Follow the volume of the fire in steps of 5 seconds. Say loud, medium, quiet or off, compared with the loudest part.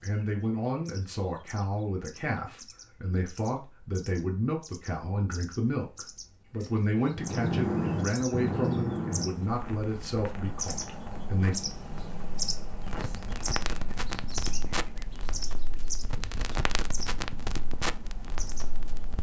off, loud, medium, medium.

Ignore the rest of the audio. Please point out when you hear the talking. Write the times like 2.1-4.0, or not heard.
0.0-11.6.